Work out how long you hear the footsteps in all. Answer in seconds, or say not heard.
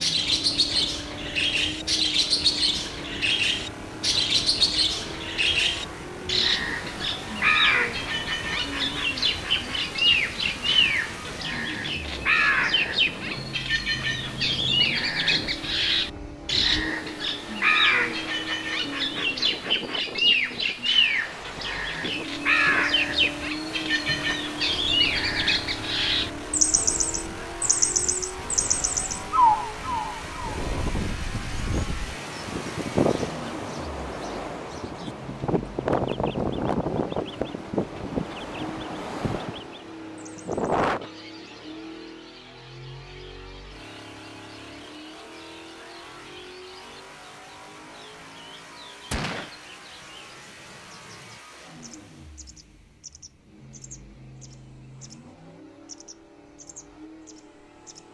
not heard.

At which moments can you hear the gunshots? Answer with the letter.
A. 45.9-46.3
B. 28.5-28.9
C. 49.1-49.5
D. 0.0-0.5
C.